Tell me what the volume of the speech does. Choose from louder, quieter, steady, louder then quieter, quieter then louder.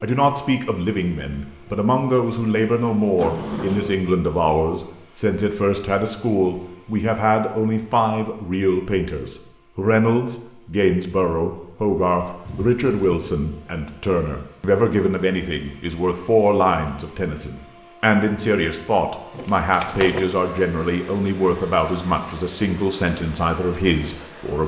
steady.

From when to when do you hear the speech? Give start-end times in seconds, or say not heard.
0.0-24.6.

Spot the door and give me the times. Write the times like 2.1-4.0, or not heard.
3.1-4.0, 12.4-13.3, 19.4-20.2.